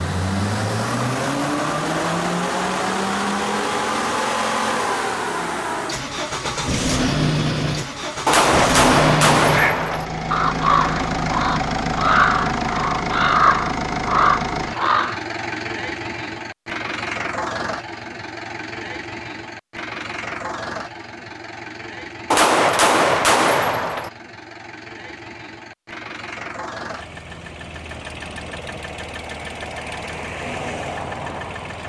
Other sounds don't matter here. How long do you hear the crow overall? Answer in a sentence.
The crow can be heard for 6 seconds in total.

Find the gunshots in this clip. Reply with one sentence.
The gunshots can be heard from 8.2 to 10.1 s and from 22.3 to 24.1 s.